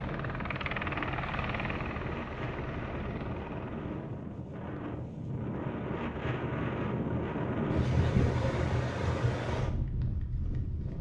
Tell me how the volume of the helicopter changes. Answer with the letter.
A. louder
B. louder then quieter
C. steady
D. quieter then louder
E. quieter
E.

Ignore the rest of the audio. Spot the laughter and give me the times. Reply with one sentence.
The laughter can't be heard in this clip.